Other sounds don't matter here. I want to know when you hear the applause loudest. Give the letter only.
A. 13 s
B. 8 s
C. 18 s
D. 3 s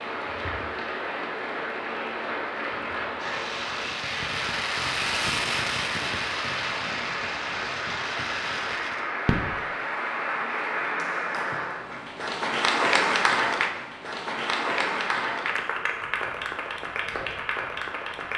A.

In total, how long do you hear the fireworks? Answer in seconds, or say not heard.
6 s.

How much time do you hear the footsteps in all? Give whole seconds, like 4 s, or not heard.
not heard.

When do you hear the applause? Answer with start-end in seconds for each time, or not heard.
0.0-18.3.